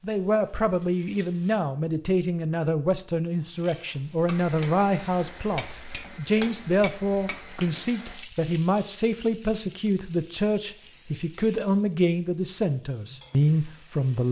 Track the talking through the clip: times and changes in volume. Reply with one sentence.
The talking can be heard from 0.0 to 14.2 s, at a steady volume.